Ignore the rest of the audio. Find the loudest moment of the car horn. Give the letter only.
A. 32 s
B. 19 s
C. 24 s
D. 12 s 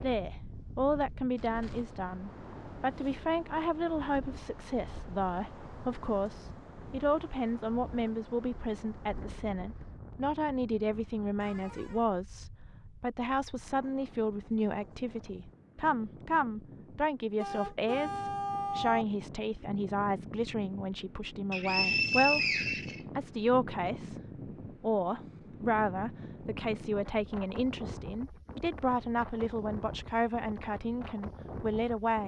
B.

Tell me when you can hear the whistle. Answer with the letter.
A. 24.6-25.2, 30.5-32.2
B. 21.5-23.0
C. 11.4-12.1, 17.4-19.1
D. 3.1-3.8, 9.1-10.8
B.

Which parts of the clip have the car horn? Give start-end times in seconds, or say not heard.
11.4-12.1, 17.4-19.1.